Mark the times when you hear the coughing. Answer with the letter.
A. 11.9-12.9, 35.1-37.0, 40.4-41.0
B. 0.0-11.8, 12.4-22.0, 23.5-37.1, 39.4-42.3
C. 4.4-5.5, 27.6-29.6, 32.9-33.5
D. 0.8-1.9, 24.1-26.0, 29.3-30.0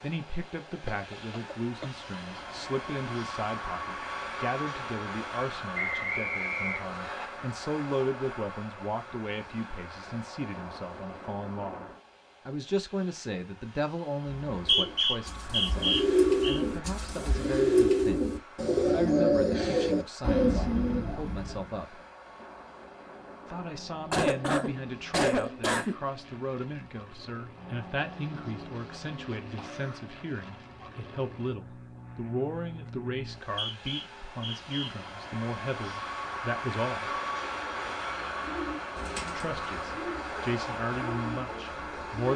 D.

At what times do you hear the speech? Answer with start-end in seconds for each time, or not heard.
0.0-11.8, 12.4-22.0, 23.5-37.1, 39.4-42.3.